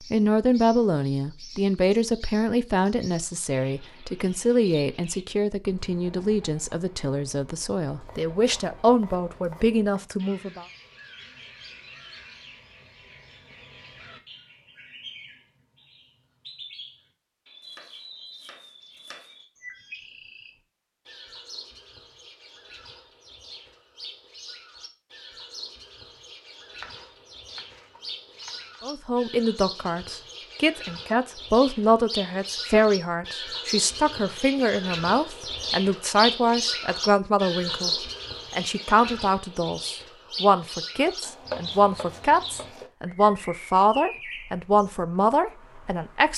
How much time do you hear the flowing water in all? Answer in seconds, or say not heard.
not heard.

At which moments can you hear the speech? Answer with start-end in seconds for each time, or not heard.
0.1-10.7, 28.8-46.3.